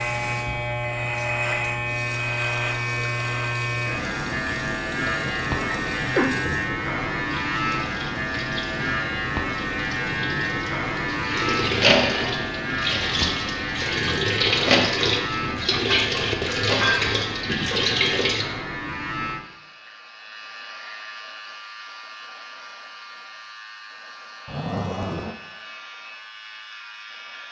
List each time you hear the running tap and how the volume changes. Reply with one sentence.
You can hear the running tap from 0.0 to 18.4 s, getting louder.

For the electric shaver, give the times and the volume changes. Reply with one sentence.
The electric shaver can be heard from 0.0 to 27.4 s, getting quieter.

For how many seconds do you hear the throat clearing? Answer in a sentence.
The throat clearing can be heard for 2 seconds in total.